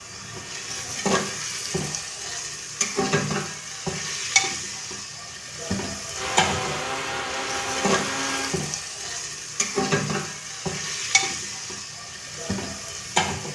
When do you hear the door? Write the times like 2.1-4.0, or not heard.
not heard.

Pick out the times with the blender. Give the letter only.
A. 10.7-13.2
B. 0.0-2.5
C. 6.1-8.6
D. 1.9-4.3
C.